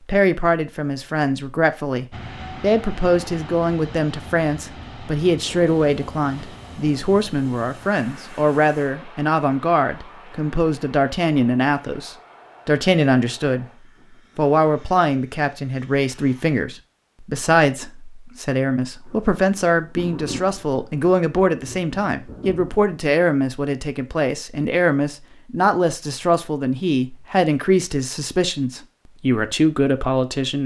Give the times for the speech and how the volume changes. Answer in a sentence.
You can hear the speech from 0.1 to 30.6 s, at a steady volume.